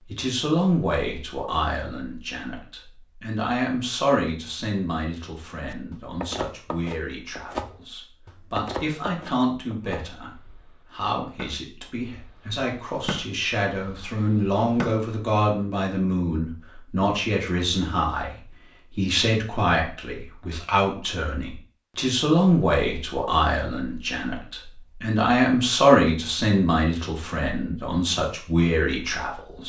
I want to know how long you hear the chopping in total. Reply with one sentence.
You can hear the chopping for 9 seconds altogether.